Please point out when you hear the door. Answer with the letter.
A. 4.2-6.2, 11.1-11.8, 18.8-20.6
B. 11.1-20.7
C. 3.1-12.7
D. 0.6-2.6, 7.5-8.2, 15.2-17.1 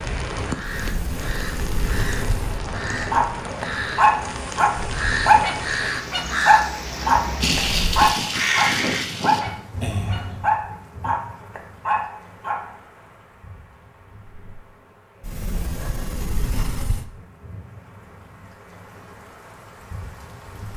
D.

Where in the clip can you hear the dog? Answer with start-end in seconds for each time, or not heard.
3.1-12.7.